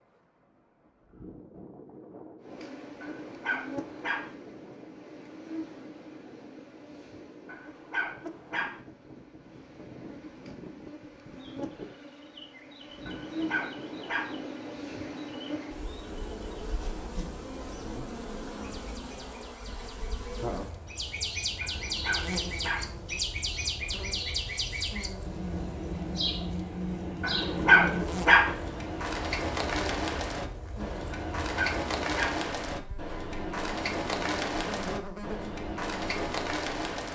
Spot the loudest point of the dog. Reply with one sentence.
The volume of the dog peaks at 28 seconds.